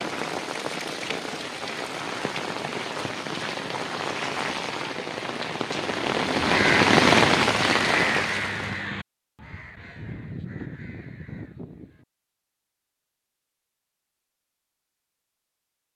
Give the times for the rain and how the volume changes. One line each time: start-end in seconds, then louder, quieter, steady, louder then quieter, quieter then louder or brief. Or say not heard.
0.0-8.9 louder.